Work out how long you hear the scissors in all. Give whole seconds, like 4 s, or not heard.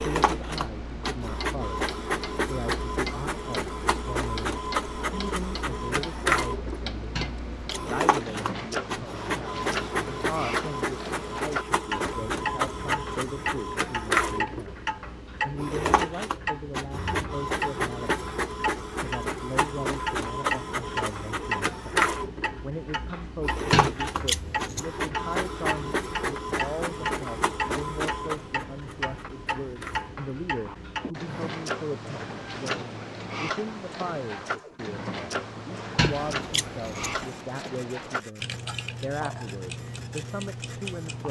3 s.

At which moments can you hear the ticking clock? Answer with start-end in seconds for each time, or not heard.
0.0-41.2.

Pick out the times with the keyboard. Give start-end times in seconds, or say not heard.
not heard.